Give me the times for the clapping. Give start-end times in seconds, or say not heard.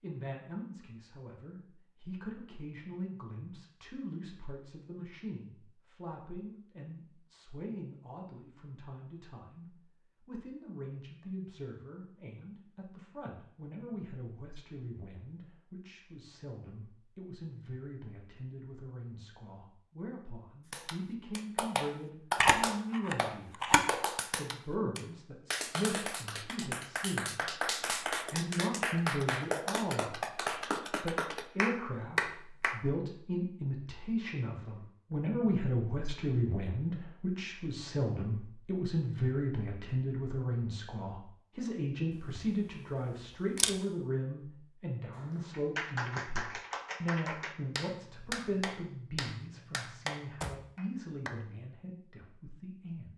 20.7-32.8, 45.1-51.4.